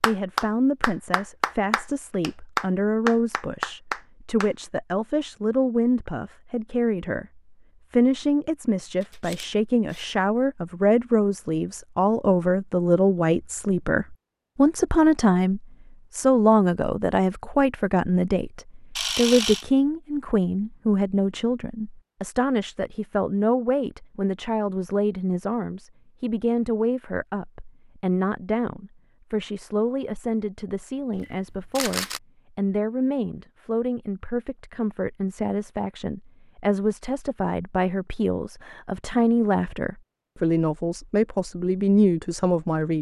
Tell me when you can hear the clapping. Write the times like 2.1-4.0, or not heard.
0.0-4.5.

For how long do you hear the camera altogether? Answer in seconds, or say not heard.
3 s.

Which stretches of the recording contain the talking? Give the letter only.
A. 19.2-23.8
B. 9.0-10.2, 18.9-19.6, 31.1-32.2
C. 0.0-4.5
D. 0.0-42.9
D.